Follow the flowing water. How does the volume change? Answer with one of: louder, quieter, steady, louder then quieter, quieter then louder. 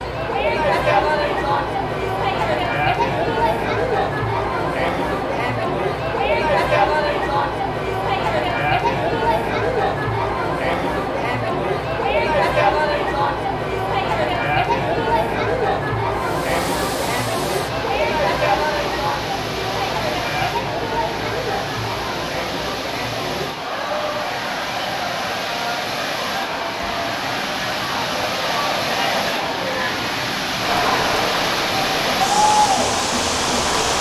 louder.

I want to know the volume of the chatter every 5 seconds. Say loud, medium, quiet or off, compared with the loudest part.
loud, loud, loud, loud, medium, medium, loud.